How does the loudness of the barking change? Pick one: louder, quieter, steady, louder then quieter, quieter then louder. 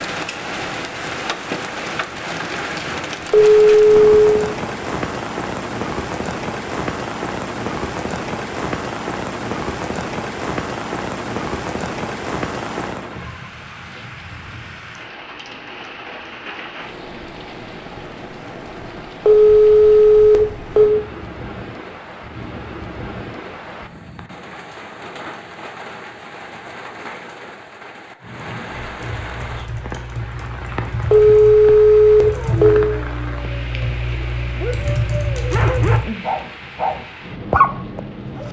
louder.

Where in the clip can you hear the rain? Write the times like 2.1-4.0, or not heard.
0.0-38.4.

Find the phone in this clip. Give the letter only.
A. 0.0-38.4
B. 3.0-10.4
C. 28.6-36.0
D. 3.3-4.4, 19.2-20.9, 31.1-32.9
D.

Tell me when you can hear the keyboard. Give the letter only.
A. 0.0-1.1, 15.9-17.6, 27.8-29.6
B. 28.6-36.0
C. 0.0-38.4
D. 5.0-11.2
B.